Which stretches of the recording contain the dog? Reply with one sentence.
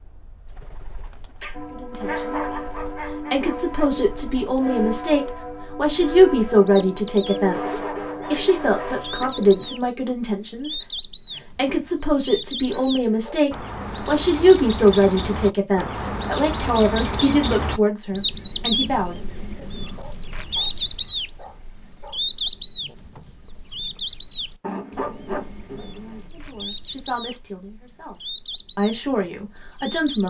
The dog can be heard from 1.4 to 4.0 s, from 7.5 to 9.3 s, from 12.7 to 13.5 s, from 19.8 to 22.4 s and from 24.6 to 26.3 s.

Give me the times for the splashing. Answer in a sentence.
The splashing can't be heard in this clip.